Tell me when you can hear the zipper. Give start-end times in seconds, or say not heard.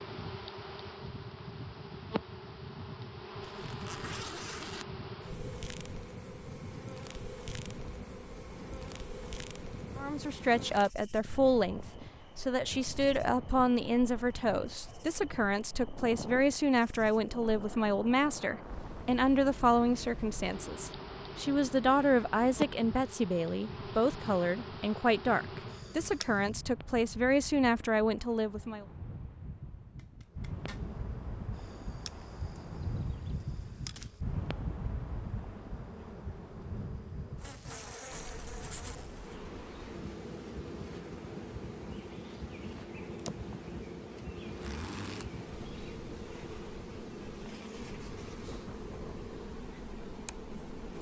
3.4-4.8, 29.9-30.9, 44.5-45.3.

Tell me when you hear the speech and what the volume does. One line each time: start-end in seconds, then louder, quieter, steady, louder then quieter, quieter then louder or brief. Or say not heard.
9.9-28.9 steady.